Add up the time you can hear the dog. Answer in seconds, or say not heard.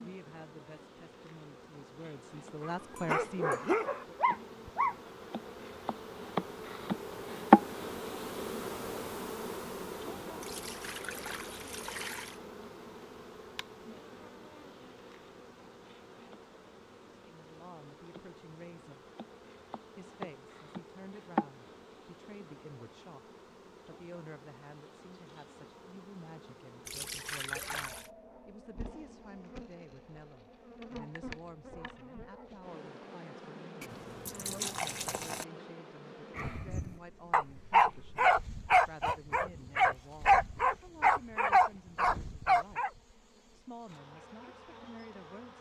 9 s.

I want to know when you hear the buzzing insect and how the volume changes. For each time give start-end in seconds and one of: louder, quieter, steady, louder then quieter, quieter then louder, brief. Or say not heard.
0.0-45.5 quieter.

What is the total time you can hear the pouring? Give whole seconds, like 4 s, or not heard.
5 s.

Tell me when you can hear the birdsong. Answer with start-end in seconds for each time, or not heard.
not heard.